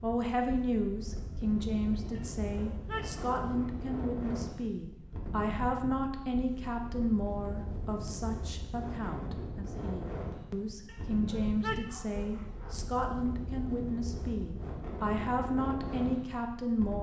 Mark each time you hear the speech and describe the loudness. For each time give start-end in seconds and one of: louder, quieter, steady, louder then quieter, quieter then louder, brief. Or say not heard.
0.0-16.9 steady.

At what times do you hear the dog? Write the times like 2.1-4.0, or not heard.
2.1-3.9, 10.8-12.8.